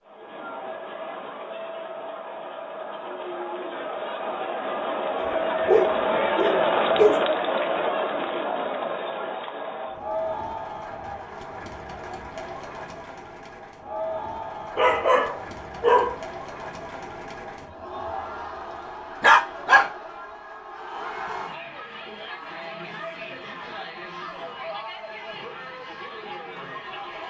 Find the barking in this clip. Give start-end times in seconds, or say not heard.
5.2-7.2, 14.8-16.2, 19.2-19.9.